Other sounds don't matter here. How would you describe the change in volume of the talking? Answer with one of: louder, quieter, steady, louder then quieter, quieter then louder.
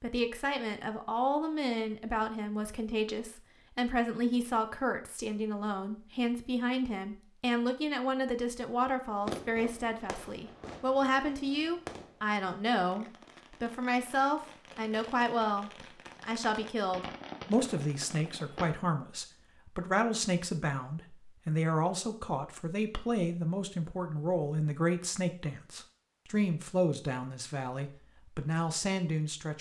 steady.